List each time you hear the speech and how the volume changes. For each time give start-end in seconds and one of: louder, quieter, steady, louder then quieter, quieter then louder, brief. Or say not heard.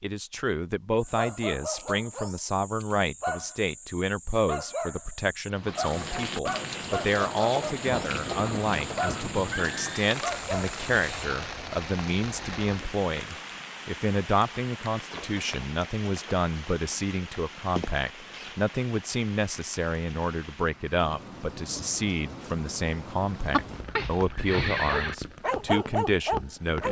0.0-26.8 steady.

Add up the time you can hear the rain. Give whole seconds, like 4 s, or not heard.
21 s.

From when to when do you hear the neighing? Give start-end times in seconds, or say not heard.
7.8-10.1, 23.5-25.1.